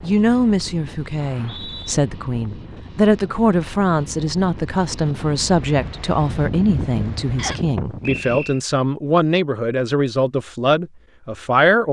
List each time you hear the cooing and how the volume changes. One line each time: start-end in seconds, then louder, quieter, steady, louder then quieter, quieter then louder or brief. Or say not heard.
not heard.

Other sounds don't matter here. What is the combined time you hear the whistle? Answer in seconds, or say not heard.
2 s.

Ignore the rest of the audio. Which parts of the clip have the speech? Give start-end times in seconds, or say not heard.
0.0-11.8.